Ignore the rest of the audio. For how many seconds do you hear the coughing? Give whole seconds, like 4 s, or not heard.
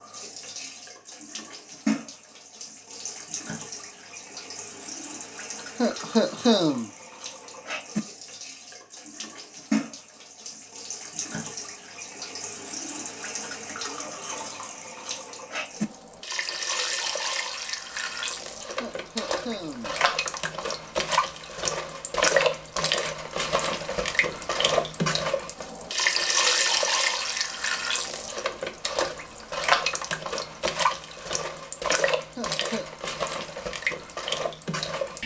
3 s.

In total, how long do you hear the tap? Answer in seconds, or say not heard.
35 s.